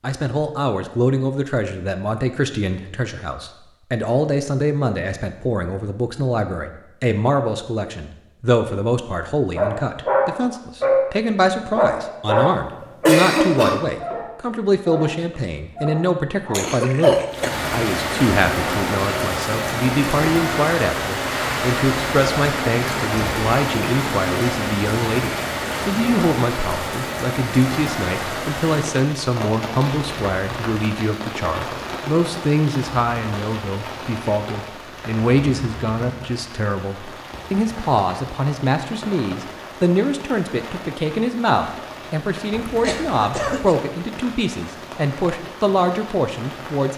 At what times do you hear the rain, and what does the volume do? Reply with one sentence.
You can hear the rain from 17.3 to 46.9 s, getting quieter.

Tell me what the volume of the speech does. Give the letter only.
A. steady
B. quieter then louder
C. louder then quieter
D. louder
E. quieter
A.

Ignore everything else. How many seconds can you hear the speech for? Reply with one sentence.
You can hear the speech for 47 seconds altogether.